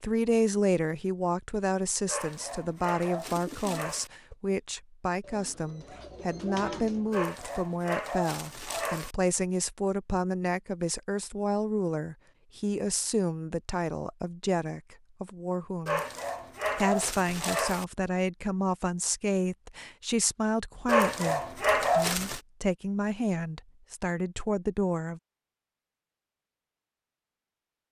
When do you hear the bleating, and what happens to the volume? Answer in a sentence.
The bleating can't be heard in this clip.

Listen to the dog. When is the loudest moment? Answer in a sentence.
The loudest moment of the dog is at 22 seconds.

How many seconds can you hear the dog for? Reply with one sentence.
The dog can be heard for 8 seconds in total.